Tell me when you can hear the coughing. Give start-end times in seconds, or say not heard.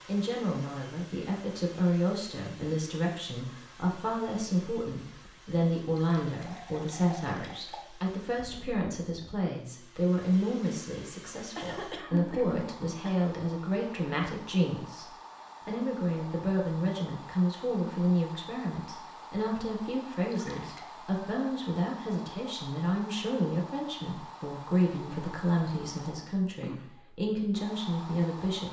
11.6-13.2.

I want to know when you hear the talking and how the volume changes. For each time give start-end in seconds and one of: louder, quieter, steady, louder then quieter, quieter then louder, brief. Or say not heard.
0.1-28.6 steady.